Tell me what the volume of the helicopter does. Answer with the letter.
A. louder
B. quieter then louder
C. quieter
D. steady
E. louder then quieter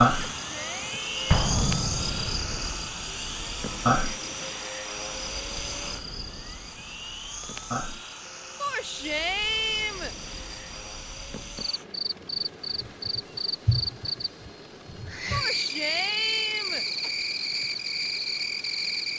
C.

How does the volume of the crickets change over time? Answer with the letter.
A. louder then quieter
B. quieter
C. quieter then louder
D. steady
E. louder
C.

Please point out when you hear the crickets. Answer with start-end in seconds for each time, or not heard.
0.0-19.1.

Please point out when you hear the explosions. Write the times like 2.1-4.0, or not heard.
1.3-2.5.